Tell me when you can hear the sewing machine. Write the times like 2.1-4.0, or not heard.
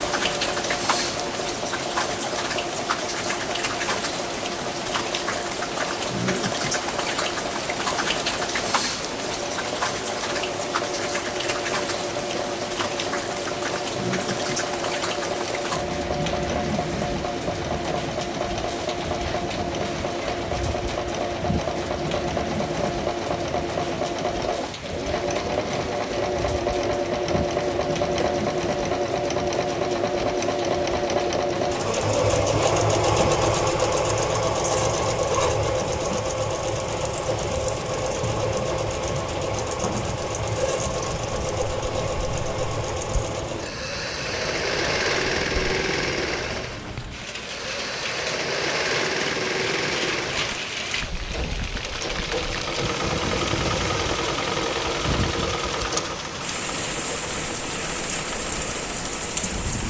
0.0-59.6.